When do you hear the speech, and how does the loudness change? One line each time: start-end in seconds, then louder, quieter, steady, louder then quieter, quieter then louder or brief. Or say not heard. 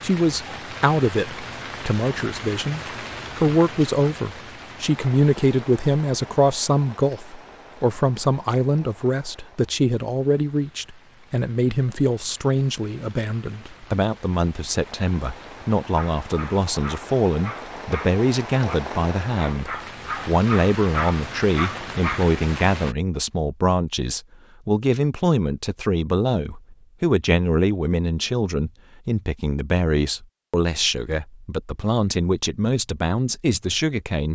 0.0-34.3 steady.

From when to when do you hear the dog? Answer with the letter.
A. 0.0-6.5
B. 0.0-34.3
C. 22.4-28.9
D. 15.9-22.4
D.